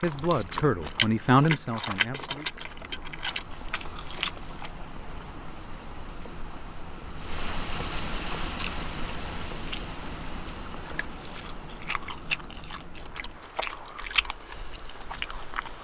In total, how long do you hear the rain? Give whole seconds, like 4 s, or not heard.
16 s.